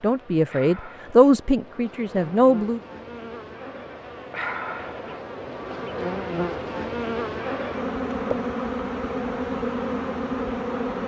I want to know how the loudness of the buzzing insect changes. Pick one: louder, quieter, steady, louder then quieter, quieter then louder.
louder.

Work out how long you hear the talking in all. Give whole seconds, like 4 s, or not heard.
3 s.